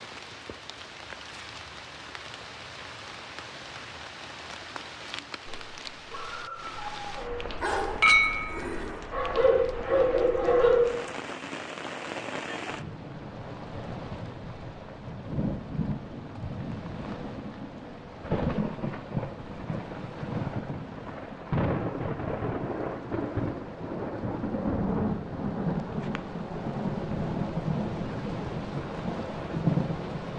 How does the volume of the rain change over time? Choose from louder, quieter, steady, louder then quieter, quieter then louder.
louder.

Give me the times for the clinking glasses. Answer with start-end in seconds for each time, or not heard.
8.0-8.6.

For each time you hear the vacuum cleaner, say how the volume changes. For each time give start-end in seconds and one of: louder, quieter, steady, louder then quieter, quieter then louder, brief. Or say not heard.
not heard.